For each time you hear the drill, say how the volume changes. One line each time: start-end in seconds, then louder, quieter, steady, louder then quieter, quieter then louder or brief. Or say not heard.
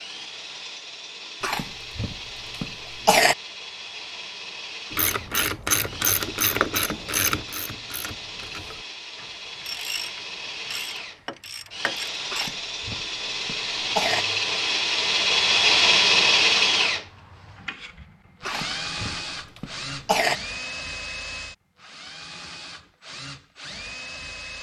0.0-24.5 louder then quieter.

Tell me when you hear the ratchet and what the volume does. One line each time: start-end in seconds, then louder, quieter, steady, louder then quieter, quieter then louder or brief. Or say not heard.
4.9-12.6 quieter then louder.